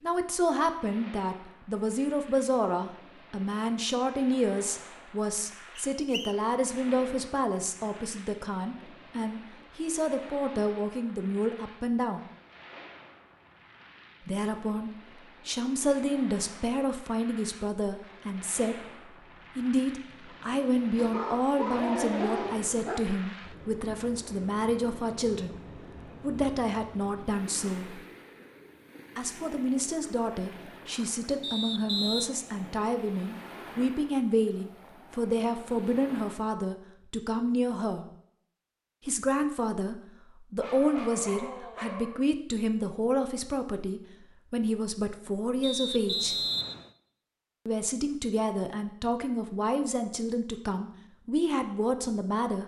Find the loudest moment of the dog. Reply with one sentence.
The volume of the dog peaks at 22 seconds.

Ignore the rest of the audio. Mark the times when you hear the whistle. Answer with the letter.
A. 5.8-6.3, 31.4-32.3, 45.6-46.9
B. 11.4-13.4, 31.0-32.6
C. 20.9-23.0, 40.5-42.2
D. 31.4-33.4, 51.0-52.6
A.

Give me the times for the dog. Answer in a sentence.
You can hear the dog from 20.9 to 23.0 s and from 40.5 to 42.2 s.